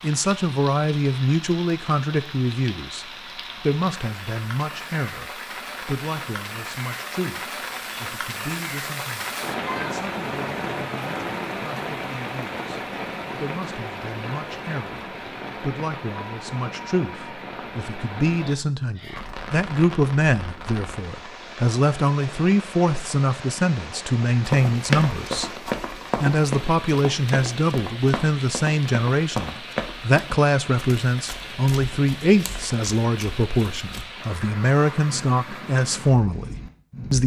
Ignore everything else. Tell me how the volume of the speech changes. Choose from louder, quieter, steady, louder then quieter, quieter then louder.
quieter then louder.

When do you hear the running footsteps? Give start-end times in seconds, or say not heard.
24.4-34.0.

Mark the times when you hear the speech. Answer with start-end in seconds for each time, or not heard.
0.0-25.5, 26.1-37.2.